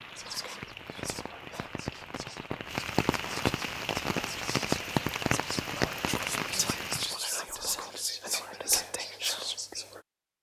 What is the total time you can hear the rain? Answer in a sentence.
The rain can be heard for 7 seconds in total.